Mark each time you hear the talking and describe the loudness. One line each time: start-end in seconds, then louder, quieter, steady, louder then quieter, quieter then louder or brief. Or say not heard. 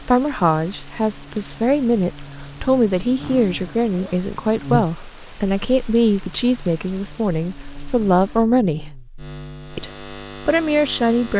0.0-8.9 steady
9.8-11.3 brief.